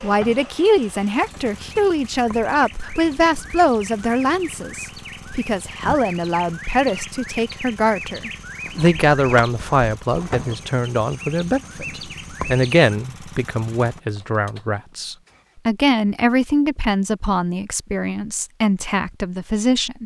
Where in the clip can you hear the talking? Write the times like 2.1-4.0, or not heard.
0.0-20.0.